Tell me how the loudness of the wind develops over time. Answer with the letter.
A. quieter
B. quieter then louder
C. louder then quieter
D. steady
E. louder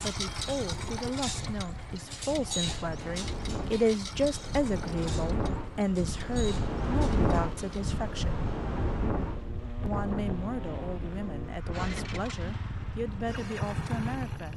C.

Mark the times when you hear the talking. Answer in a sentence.
You can hear the talking from 0.0 to 8.4 s and from 9.8 to 14.5 s.